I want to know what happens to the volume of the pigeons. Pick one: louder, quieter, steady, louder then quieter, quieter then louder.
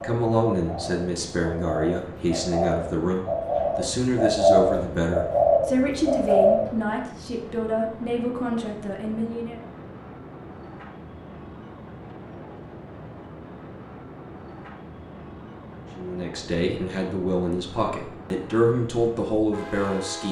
louder.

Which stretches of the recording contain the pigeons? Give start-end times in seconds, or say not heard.
0.0-6.8.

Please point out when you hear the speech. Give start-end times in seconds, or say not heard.
0.0-9.6, 15.9-20.2.